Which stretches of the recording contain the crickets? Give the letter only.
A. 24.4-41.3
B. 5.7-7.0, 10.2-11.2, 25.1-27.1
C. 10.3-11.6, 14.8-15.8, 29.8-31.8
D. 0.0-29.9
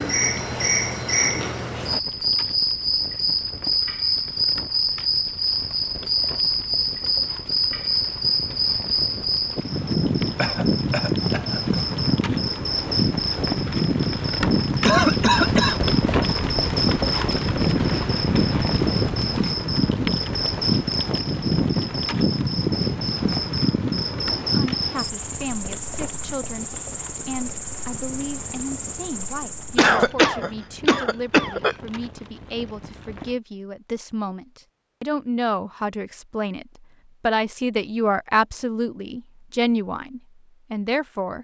D.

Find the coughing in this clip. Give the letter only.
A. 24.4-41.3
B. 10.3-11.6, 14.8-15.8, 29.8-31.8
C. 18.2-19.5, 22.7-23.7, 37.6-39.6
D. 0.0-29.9
B.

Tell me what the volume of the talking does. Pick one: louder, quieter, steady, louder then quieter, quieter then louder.
louder.